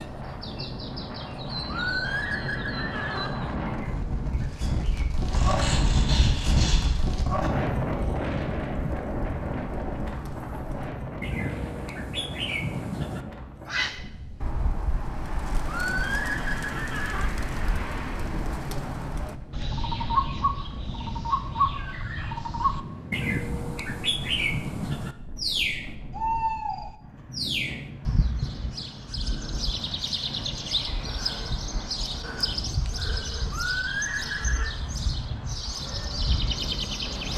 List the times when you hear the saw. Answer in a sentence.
You can hear the saw from 5.3 to 7.0 s.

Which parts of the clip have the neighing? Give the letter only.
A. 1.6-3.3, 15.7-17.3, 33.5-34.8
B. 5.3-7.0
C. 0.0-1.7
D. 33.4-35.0
A.